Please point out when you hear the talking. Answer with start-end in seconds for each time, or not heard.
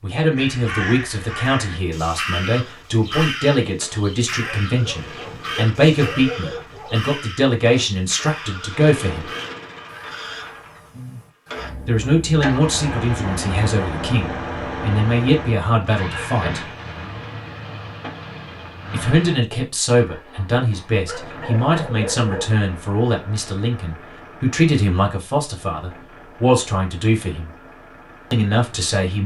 0.0-9.3, 11.8-16.7, 18.9-27.5, 28.3-29.2.